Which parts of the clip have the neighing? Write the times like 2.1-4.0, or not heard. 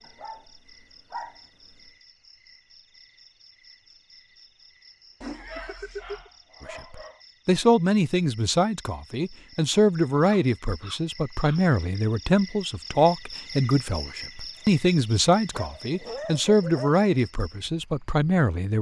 5.2-6.3.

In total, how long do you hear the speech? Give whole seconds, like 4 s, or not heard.
12 s.